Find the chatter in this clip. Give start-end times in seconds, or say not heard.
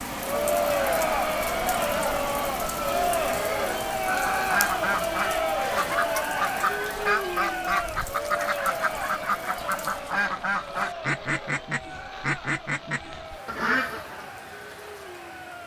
0.0-15.6.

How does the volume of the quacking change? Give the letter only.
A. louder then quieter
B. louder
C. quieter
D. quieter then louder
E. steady
E.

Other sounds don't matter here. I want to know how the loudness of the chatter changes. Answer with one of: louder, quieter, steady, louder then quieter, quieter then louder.
quieter.